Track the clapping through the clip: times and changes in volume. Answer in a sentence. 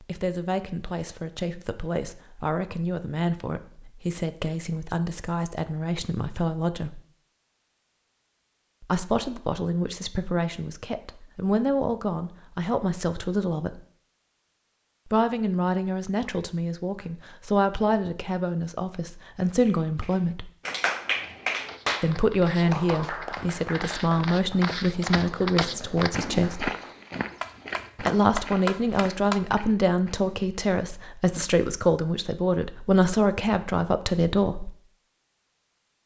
The clapping can be heard from 19.4 to 29.4 s, getting quieter then louder.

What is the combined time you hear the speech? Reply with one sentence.
You can hear the speech for 29 seconds altogether.